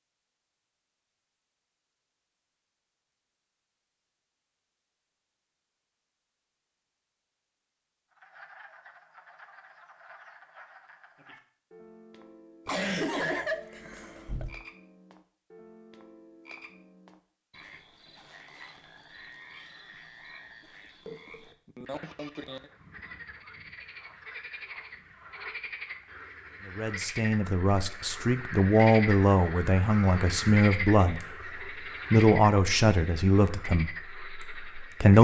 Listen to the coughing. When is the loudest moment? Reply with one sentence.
The volume of the coughing peaks at 13 seconds.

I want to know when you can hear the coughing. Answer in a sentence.
You can hear the coughing from 12.7 to 14.6 s and from 21.1 to 22.6 s.